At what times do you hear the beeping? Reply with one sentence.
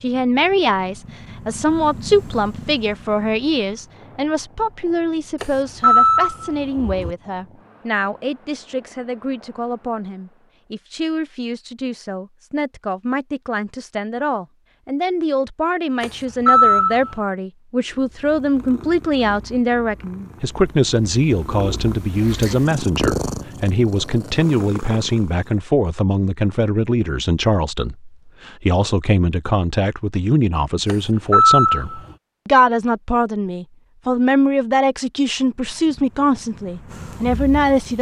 You can hear the beeping from 5.4 to 7.2 s, from 16.0 to 17.1 s and from 30.9 to 32.0 s.